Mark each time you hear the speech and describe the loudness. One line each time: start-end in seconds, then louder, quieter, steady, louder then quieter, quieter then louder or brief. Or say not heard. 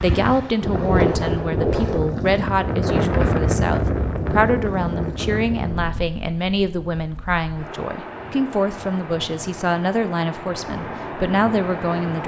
0.0-12.2 steady.